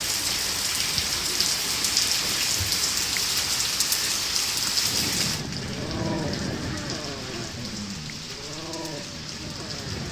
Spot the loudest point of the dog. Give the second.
6 s.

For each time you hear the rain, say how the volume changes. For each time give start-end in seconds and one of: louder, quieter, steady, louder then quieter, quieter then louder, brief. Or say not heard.
0.0-10.0 quieter.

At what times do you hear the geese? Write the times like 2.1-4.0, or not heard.
4.8-10.0.